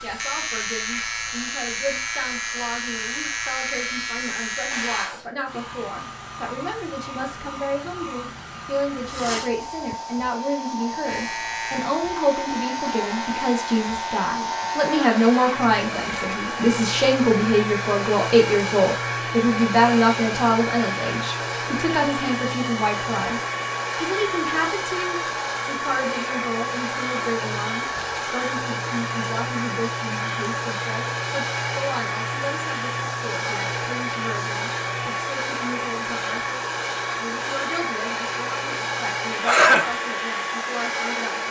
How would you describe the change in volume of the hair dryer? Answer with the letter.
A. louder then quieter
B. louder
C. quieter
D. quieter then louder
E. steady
B.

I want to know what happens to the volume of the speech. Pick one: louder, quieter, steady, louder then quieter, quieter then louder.
louder then quieter.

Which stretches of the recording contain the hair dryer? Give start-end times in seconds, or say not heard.
0.0-41.4.